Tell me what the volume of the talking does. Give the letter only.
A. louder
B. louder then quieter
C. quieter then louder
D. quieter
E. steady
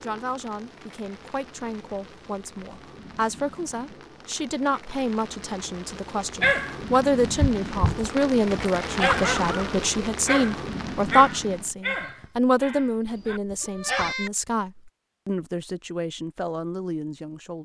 B.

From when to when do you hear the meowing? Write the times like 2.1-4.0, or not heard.
13.1-14.3.